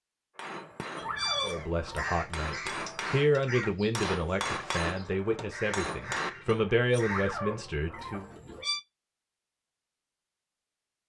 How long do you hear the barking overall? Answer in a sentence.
You can hear the barking for 3 seconds altogether.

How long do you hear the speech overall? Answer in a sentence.
You can hear the speech for 7 seconds altogether.